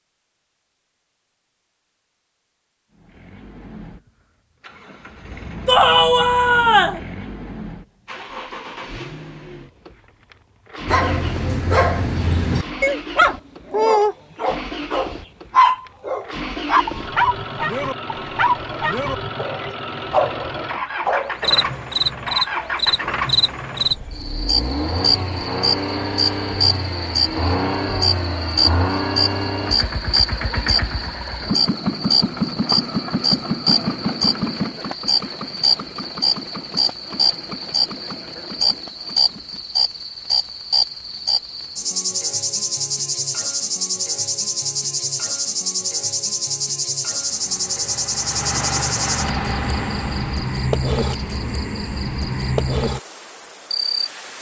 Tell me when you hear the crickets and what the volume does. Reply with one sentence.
You can hear the crickets from 21.4 to 54.3 s, at a steady volume.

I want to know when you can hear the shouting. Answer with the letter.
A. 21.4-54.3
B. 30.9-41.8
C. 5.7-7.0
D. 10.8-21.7
C.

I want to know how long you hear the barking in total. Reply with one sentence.
You can hear the barking for 11 seconds altogether.